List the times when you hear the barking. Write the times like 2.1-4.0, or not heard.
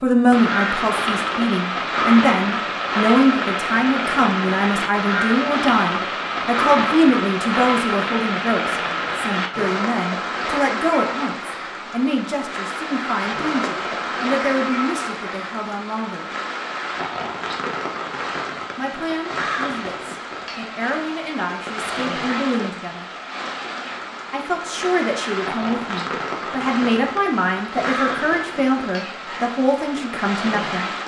not heard.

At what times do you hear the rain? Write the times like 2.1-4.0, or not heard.
0.0-31.0.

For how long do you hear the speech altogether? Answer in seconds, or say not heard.
27 s.